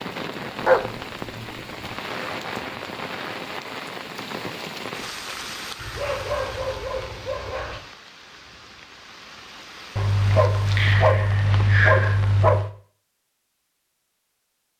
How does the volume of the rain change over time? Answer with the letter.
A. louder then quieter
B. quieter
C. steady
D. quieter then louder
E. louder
B.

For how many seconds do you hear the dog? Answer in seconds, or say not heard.
6 s.